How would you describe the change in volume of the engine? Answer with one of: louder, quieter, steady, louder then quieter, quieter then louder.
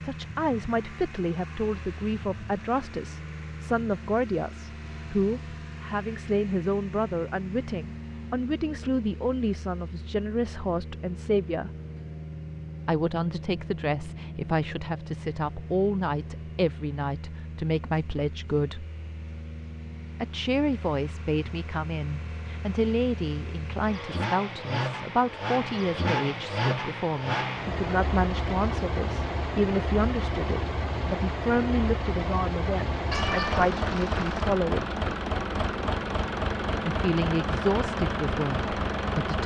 louder.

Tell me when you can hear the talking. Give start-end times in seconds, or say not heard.
0.1-11.7, 12.8-18.9, 20.2-35.0, 36.9-39.4.